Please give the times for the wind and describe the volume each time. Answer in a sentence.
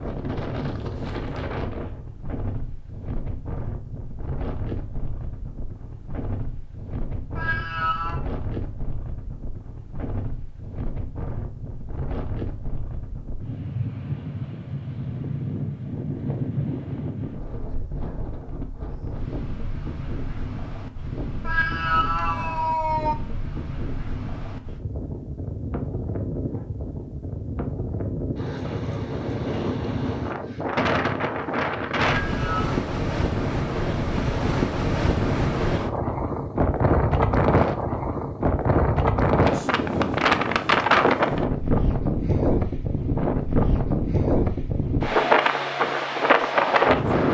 The wind can be heard from 0.0 to 47.2 s, getting louder.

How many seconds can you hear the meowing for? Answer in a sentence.
The meowing can be heard for 3 seconds in total.